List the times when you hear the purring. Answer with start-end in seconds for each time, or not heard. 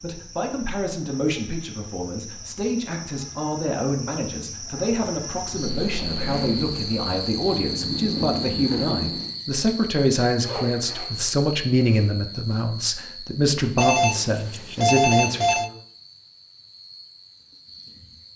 5.5-9.3.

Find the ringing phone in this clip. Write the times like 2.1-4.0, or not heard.
13.8-15.7.